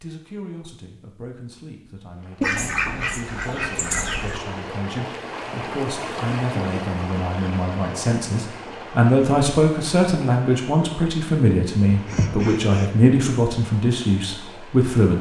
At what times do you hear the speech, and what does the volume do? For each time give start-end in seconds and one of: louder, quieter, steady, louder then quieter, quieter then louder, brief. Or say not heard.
0.0-15.1 louder.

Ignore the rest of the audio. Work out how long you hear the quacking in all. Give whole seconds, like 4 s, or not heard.
3 s.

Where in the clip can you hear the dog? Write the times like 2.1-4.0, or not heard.
not heard.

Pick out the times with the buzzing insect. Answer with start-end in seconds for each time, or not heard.
not heard.